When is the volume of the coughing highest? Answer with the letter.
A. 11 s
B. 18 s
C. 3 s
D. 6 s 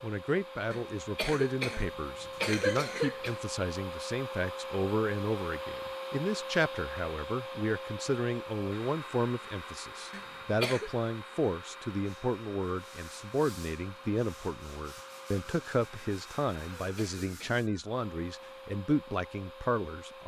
C.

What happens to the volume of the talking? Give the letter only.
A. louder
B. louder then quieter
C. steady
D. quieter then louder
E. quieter
C.